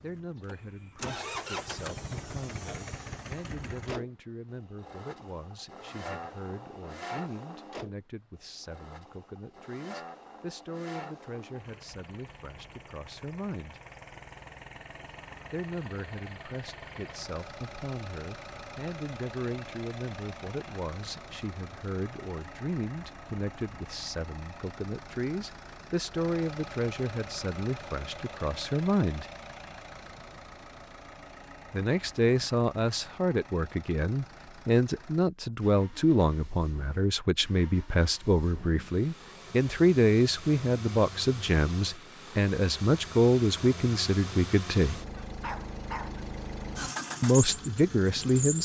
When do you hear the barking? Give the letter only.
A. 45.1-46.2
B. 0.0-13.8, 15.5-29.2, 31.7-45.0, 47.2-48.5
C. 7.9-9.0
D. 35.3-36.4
A.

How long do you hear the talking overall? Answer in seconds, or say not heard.
42 s.